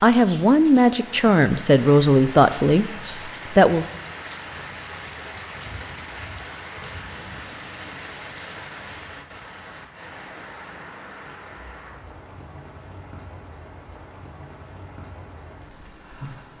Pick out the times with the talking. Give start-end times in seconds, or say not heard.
0.0-3.9.